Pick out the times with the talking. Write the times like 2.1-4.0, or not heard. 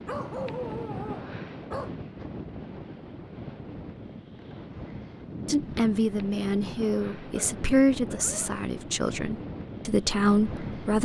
5.5-11.0.